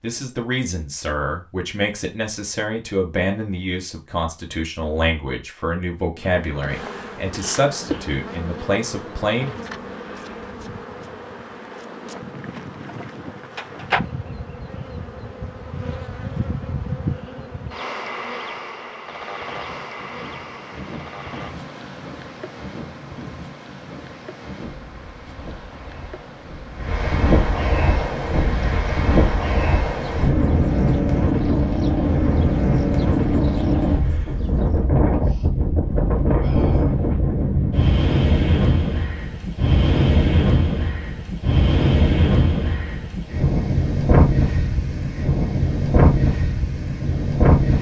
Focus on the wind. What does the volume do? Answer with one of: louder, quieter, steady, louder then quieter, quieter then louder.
louder.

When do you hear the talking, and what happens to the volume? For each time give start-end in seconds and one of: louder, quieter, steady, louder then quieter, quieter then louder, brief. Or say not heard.
0.0-9.7 steady.